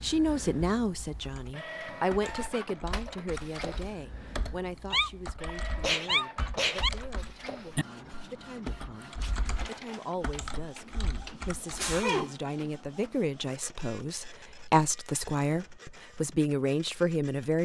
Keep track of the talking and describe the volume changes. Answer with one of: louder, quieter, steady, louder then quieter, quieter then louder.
quieter then louder.